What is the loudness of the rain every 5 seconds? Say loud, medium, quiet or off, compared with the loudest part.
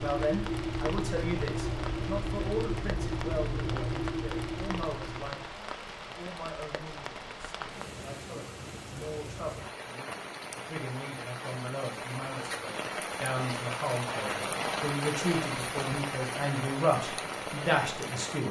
medium, medium, loud, loud.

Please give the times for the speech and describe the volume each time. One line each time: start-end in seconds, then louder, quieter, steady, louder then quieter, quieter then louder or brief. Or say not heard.
0.0-18.4 quieter then louder.